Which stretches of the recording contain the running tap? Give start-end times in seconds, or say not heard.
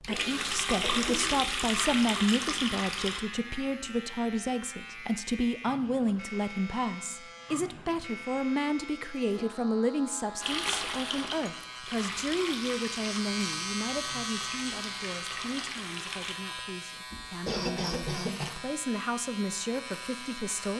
0.0-3.2, 10.4-16.4.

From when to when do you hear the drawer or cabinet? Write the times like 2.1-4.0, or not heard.
not heard.